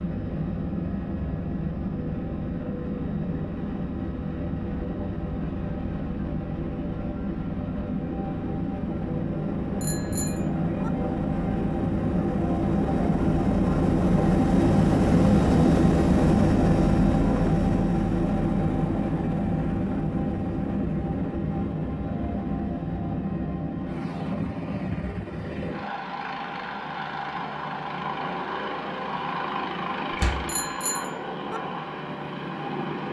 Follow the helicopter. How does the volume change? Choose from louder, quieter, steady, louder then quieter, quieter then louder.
louder then quieter.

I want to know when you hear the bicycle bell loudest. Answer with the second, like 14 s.
31 s.